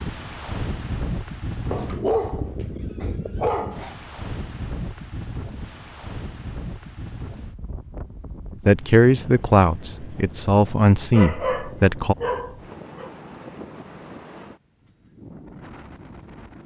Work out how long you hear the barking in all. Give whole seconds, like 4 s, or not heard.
4 s.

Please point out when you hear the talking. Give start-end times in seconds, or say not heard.
8.7-12.2.